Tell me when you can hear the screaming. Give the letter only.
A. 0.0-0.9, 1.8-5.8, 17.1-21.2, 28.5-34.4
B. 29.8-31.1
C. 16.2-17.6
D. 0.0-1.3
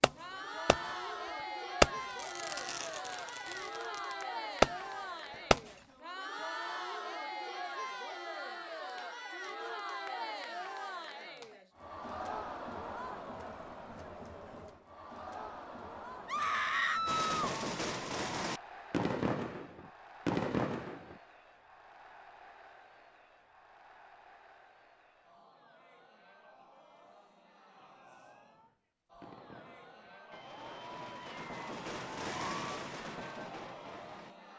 C.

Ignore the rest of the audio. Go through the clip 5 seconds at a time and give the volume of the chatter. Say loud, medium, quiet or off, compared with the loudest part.
loud, loud, loud, medium, quiet, quiet, medium.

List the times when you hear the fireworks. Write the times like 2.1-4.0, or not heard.
0.0-0.9, 1.8-5.8, 17.1-21.2, 28.5-34.4.